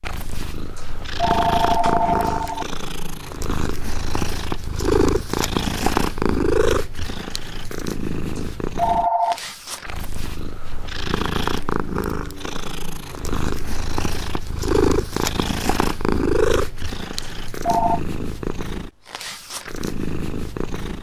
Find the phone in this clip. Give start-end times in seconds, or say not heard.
0.8-2.6, 8.3-9.4, 17.2-18.0.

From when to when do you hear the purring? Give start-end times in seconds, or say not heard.
0.0-20.9.